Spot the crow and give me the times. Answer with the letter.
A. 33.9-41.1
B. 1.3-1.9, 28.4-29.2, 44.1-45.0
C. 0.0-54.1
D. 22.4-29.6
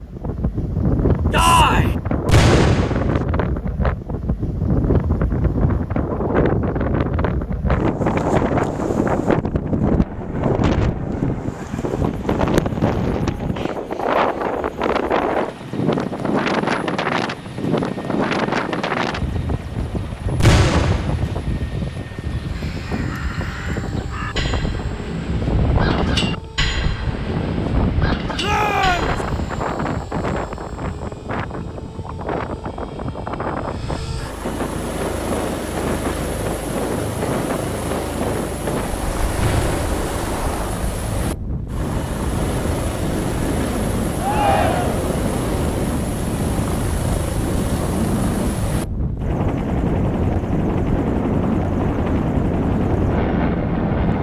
D.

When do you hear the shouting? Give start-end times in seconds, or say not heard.
1.3-1.9, 28.4-29.2, 44.1-45.0.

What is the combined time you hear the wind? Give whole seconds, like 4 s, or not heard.
54 s.